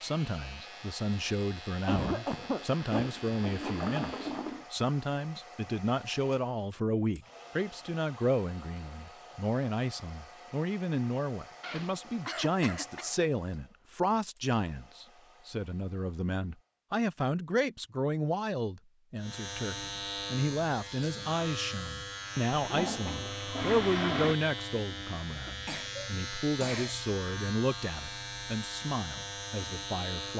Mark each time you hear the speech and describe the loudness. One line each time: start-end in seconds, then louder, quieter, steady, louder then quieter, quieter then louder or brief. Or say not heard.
0.0-30.3 steady.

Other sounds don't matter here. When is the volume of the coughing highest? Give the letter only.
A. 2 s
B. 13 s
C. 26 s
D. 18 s
A.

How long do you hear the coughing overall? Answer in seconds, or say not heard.
4 s.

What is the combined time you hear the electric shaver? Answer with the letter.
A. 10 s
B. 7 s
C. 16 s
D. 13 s
C.